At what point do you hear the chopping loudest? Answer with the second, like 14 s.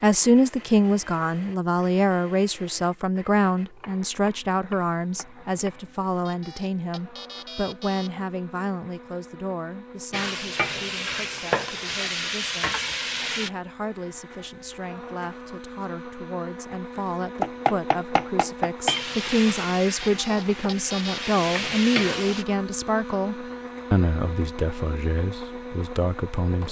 18 s.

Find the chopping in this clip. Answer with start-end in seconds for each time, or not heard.
3.5-6.0, 17.4-18.9.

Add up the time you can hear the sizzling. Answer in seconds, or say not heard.
7 s.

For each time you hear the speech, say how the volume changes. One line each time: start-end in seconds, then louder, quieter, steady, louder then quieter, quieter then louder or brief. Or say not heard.
0.0-26.6 quieter then louder.